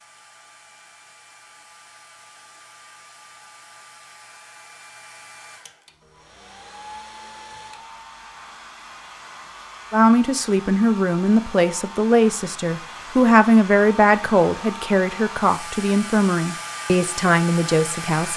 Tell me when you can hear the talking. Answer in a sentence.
You can hear the talking from 9.9 to 18.3 s.